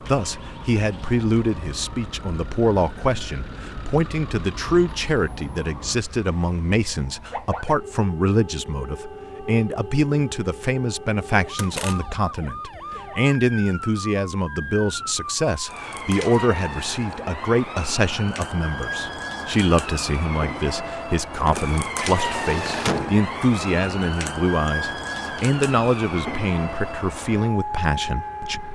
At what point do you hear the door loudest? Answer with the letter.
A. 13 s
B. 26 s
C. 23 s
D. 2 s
C.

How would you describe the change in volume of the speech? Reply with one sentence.
The loudness of the speech stays about the same.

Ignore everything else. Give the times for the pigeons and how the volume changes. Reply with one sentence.
The pigeons can't be heard in this clip.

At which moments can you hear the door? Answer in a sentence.
You can hear the door from 11.6 to 12.2 s and from 21.4 to 23.2 s.